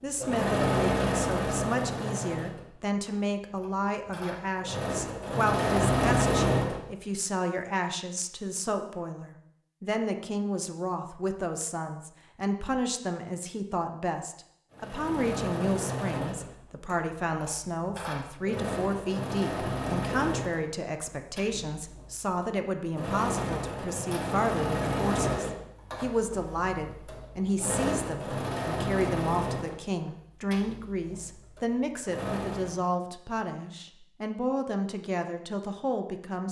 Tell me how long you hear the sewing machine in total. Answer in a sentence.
You can hear the sewing machine for 25 seconds altogether.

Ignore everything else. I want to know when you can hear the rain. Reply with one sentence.
You can't hear the rain here.